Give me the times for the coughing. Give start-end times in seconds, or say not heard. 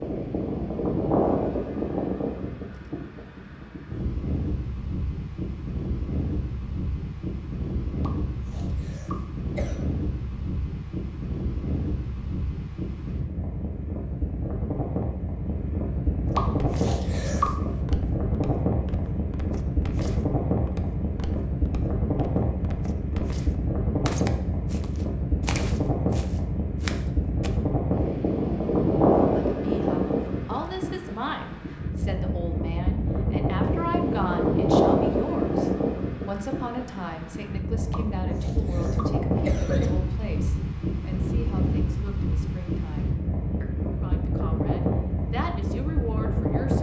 8.0-9.8, 16.4-17.8, 37.9-39.9.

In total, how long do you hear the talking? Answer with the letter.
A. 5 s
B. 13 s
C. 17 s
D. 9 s
C.